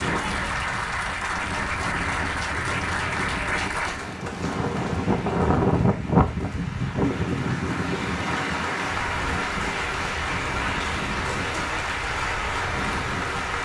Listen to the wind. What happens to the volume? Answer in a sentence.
The volume of the wind goes up, then down.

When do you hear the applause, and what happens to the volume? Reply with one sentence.
You can hear the applause from 0.0 to 13.6 s, getting quieter then louder.